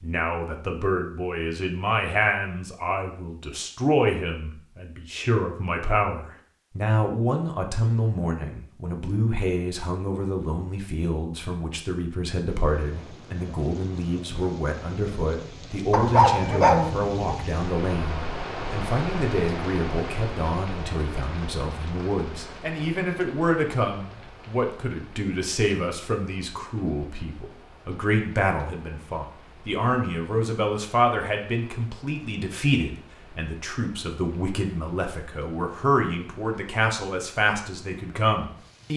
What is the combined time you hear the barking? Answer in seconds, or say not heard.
2 s.